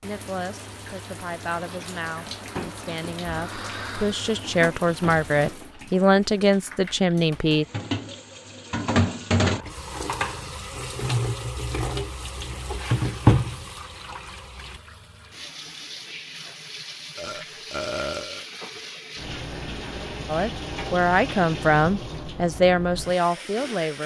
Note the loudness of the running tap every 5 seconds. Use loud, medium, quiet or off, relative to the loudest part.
medium, loud, loud, medium, medium.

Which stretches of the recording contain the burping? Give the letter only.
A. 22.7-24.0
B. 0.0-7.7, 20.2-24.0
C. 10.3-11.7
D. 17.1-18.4
D.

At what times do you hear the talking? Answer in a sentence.
You can hear the talking from 0.0 to 7.7 s and from 20.2 to 24.0 s.